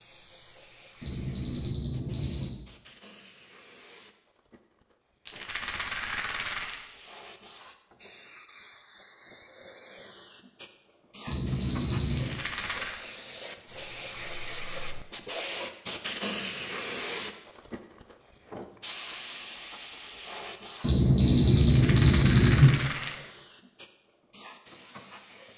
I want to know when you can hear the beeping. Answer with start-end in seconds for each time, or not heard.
1.0-2.6, 11.2-12.4, 20.8-22.8.